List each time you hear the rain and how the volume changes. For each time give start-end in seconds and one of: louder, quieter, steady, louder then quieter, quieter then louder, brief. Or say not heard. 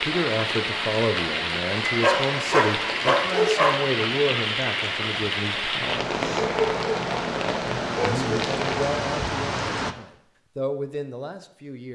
0.0-9.9 steady.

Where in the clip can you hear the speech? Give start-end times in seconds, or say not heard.
0.0-6.0, 8.2-11.8.